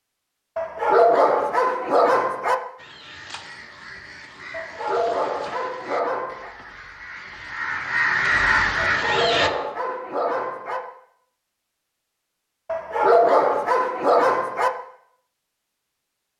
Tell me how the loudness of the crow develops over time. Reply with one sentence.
The loudness of the crow goes up.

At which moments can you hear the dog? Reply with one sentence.
You can hear the dog from 0.6 to 2.5 s, from 4.5 to 6.5 s, from 8.9 to 10.8 s and from 12.7 to 14.7 s.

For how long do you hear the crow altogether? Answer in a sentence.
The crow can be heard for 7 seconds in total.